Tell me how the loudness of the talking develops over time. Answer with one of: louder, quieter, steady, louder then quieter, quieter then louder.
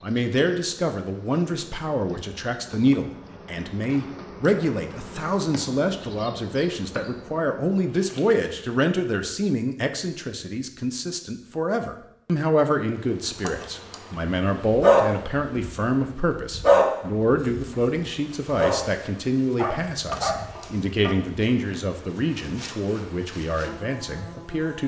steady.